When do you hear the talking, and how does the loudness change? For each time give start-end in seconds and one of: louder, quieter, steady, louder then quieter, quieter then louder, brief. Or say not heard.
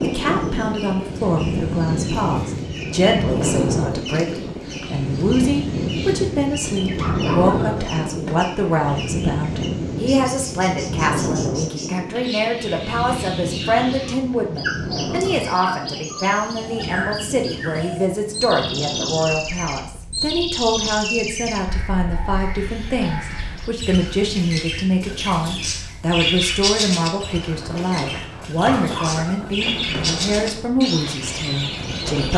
0.0-32.3 steady.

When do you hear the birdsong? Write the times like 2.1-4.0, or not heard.
0.0-32.3.